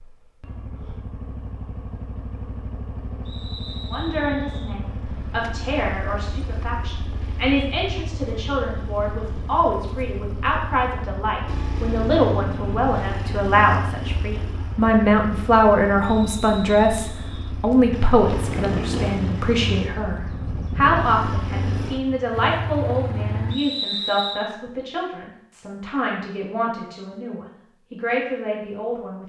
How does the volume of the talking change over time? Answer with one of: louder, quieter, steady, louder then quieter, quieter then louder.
louder then quieter.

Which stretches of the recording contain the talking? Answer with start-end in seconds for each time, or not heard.
3.9-29.2.